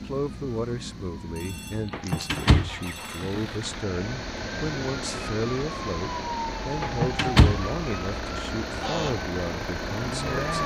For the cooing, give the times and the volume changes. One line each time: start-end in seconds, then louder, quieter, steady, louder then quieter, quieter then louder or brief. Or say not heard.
not heard.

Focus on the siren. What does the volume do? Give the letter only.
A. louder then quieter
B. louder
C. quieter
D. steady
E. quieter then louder
B.